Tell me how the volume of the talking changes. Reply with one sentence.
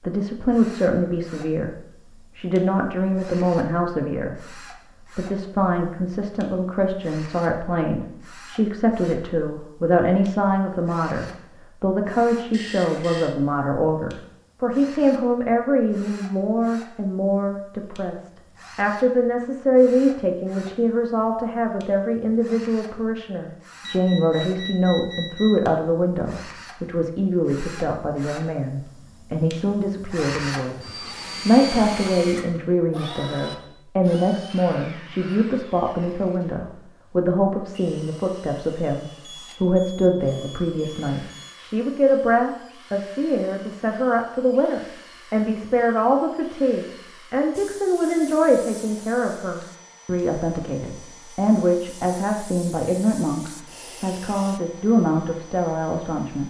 The volume of the talking stays about the same.